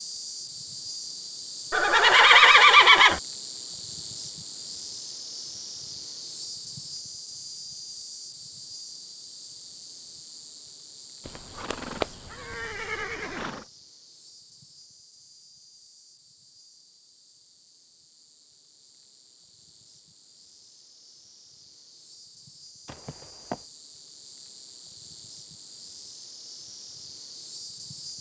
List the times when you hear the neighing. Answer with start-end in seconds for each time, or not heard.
1.7-3.2, 11.2-13.6, 22.9-23.6.